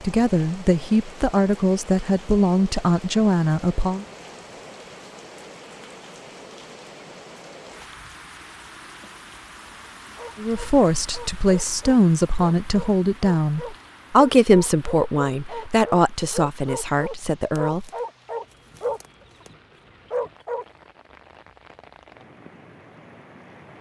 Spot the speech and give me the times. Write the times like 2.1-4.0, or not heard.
0.0-4.0, 10.3-17.9.